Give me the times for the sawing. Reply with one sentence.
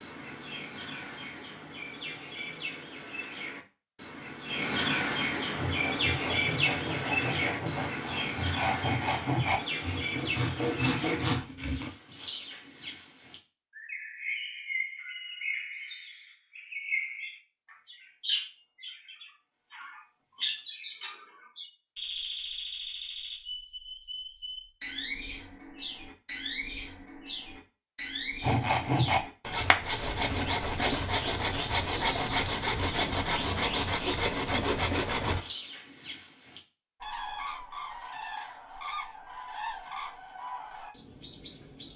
You can hear the sawing from 5.5 to 11.9 s and from 28.4 to 35.4 s.